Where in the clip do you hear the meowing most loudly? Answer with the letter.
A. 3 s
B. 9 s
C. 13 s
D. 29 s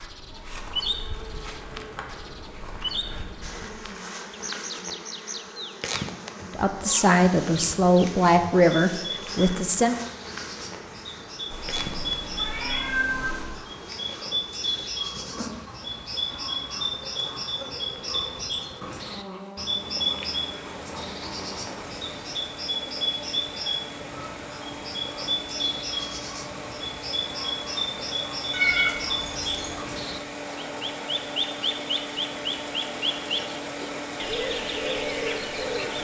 D.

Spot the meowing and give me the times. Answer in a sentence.
You can hear the meowing from 11.5 to 13.4 s and from 28.5 to 29.7 s.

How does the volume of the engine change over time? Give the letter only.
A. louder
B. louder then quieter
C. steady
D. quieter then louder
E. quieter
A.